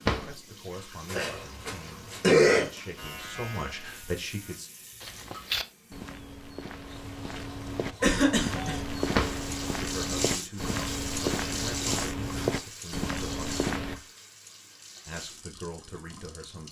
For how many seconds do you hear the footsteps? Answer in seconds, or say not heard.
9 s.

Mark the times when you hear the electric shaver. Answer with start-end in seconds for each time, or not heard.
3.0-4.6.